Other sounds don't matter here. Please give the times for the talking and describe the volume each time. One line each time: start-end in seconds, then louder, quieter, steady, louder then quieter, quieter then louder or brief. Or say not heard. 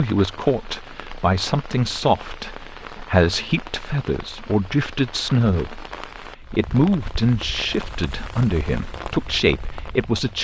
0.0-10.3 steady.